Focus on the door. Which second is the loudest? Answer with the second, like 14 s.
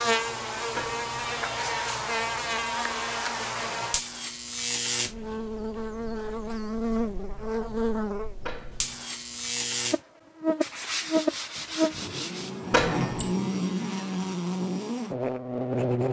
13 s.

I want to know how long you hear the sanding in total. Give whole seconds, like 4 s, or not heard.
2 s.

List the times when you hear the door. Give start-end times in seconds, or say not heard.
0.7-1.1, 8.4-9.1, 12.7-13.3.